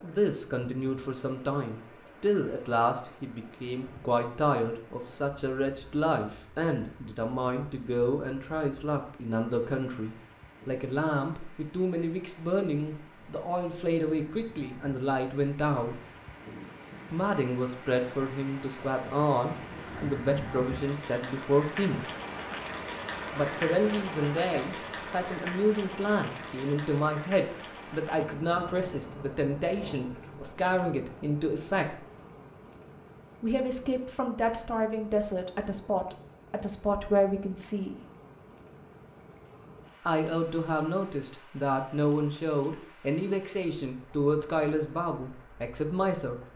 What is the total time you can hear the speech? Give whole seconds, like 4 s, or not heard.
41 s.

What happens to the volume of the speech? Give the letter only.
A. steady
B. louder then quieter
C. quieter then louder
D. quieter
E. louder
A.